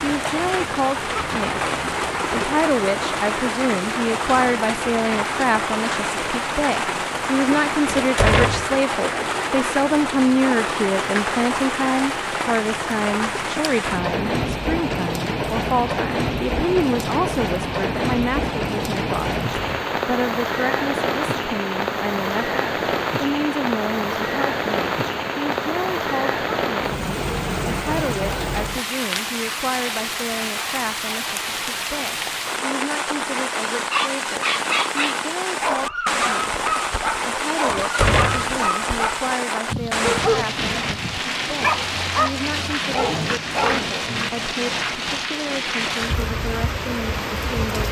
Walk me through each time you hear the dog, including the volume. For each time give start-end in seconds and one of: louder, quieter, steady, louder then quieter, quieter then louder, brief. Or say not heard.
33.9-44.0 steady.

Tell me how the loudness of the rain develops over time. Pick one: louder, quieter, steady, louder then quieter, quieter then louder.
steady.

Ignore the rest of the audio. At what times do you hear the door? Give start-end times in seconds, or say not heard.
7.8-8.8, 19.5-19.9, 37.6-38.5.